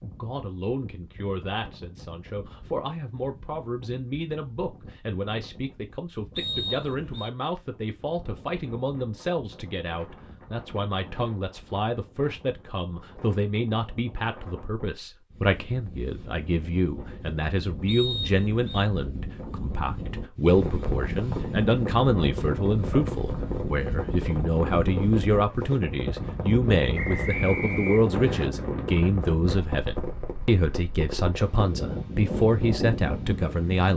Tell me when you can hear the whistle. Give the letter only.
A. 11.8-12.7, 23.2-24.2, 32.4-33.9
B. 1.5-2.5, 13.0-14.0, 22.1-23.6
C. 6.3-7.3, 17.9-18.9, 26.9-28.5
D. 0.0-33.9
C.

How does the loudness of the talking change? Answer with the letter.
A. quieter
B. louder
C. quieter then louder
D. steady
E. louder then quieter
B.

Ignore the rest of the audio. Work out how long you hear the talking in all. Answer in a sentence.
You can hear the talking for 34 seconds altogether.